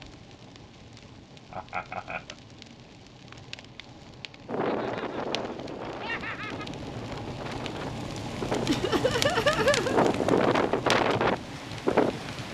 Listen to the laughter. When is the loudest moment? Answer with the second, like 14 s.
10 s.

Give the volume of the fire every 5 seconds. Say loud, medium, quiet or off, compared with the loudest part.
quiet, loud, loud.